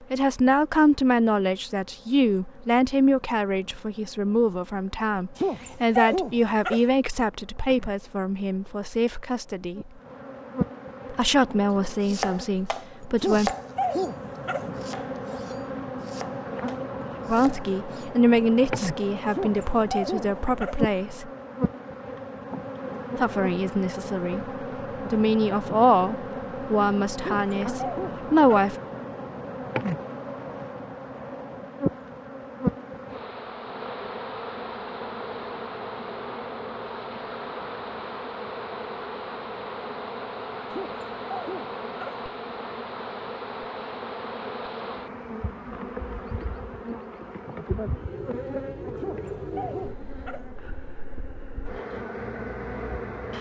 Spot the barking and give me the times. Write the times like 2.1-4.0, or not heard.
5.3-6.8, 13.2-14.7, 19.3-20.8, 27.2-28.7, 40.7-42.2, 49.0-50.5.